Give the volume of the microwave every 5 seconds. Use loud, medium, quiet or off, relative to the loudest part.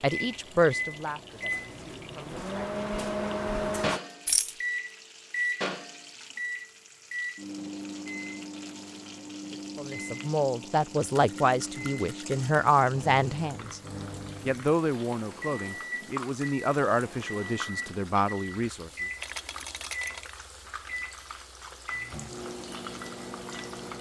loud, loud, medium, medium, medium.